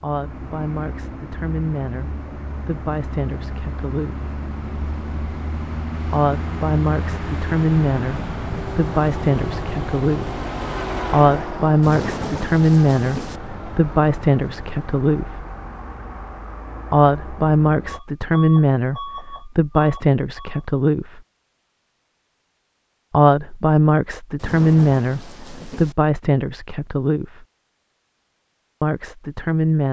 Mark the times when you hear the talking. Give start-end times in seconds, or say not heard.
0.0-4.3, 6.1-10.4, 11.1-15.4, 16.9-21.2, 23.1-27.4, 28.8-29.8.